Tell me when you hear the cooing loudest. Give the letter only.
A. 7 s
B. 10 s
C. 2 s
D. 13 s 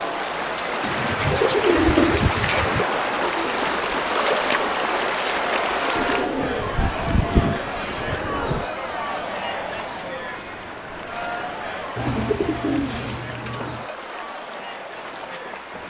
C.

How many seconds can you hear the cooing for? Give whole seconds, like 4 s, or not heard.
7 s.